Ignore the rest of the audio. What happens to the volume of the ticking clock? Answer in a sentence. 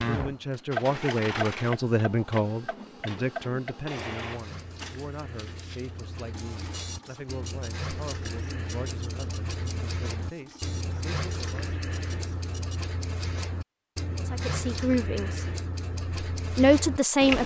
The volume of the ticking clock goes down, then up.